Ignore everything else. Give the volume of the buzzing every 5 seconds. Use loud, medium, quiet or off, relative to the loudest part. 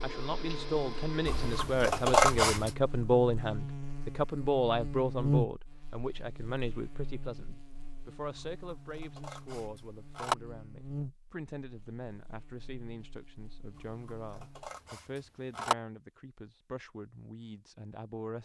medium, loud, medium, off.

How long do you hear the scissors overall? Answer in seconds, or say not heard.
4 s.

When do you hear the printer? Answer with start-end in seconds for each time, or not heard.
0.0-1.6.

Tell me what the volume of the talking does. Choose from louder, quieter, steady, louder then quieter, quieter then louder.
quieter.